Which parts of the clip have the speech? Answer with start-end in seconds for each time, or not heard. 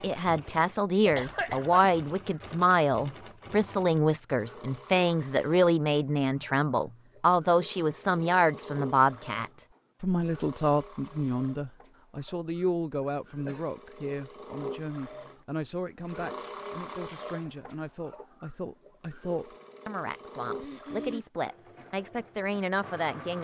0.0-23.4.